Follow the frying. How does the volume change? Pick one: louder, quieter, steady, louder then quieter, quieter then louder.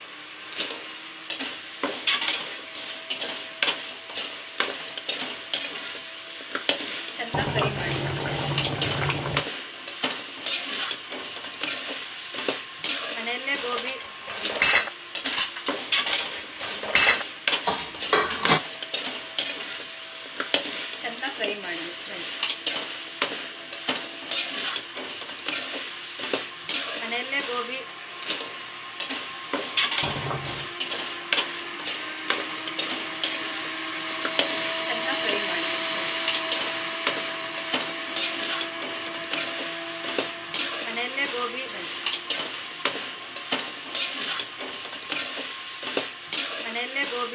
steady.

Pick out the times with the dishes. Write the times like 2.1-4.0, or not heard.
13.6-18.6.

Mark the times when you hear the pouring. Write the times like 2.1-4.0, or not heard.
7.3-9.4, 30.0-30.7.